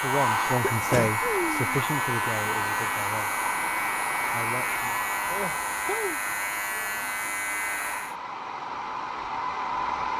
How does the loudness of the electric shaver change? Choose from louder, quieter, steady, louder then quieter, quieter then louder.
steady.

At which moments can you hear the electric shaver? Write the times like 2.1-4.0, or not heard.
0.0-8.2.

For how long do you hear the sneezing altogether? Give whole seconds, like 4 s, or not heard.
2 s.